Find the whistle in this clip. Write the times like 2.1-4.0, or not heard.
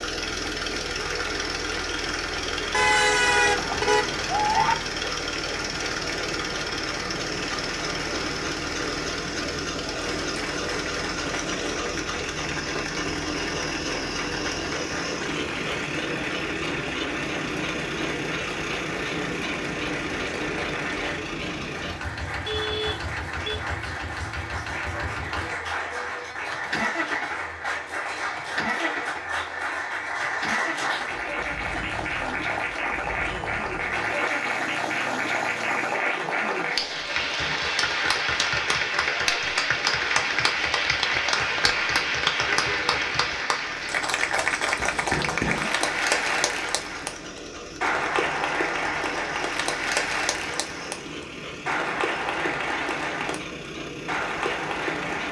not heard.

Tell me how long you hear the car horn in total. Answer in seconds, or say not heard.
4 s.